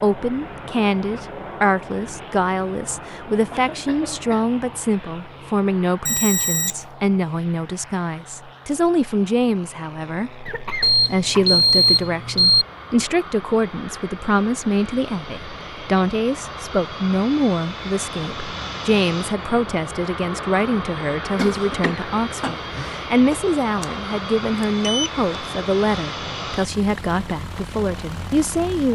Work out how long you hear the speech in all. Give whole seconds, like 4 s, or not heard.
29 s.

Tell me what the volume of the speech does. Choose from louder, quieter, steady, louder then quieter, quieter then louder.
steady.